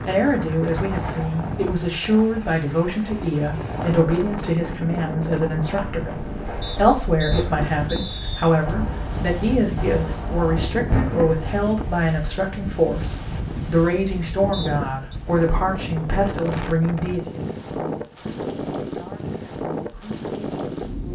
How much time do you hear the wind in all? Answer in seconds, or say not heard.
21 s.